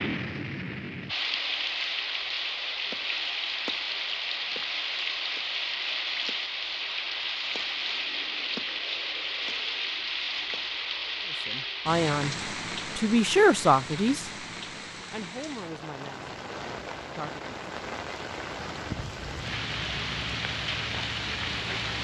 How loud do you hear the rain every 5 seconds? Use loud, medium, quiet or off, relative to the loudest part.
loud, loud, loud, medium, loud.